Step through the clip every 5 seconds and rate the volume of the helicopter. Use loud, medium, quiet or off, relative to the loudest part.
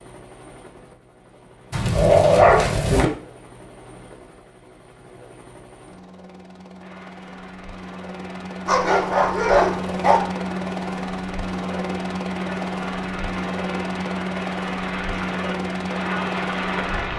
quiet, medium, loud, loud.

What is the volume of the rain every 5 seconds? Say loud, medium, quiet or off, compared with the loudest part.
off, quiet, medium, loud.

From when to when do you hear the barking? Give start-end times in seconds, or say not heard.
1.7-3.1, 8.7-10.2.